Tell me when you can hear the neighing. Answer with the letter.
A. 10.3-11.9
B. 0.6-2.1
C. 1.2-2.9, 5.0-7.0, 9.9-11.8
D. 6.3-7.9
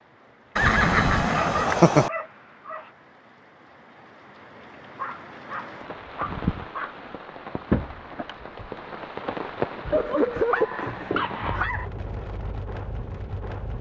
B.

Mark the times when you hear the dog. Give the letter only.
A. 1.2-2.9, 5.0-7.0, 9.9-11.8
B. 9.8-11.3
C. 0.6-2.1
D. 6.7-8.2
A.